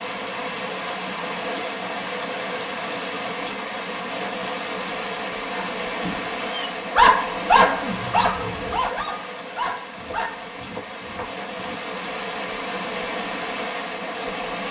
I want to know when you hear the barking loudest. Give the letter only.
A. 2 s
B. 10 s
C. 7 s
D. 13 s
C.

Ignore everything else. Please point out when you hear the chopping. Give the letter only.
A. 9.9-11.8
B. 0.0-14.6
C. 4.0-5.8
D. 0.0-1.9
A.